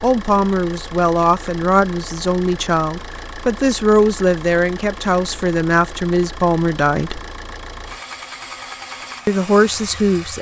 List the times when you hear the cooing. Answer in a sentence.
The cooing can't be heard in this clip.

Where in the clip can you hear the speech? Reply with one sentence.
The speech can be heard from 0.0 to 7.2 s and from 9.2 to 10.3 s.